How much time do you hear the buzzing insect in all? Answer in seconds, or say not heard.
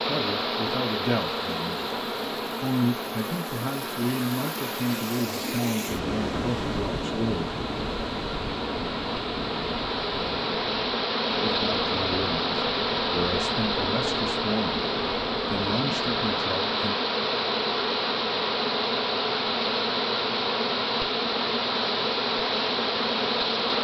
24 s.